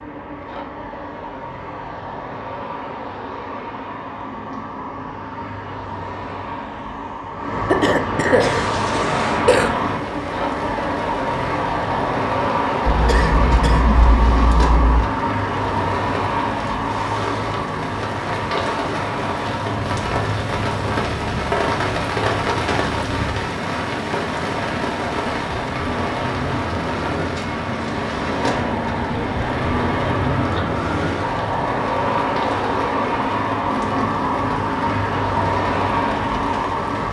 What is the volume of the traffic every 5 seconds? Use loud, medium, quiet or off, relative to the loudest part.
medium, loud, loud, loud, medium, loud, loud, loud.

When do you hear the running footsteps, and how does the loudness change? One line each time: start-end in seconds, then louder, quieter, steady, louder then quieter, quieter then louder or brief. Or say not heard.
not heard.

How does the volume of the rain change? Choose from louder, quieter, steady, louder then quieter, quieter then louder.
louder then quieter.